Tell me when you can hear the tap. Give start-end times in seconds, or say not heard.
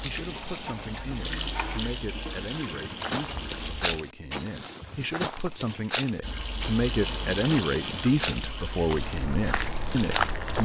0.0-4.0, 6.2-10.6.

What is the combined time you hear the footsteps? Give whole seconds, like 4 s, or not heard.
8 s.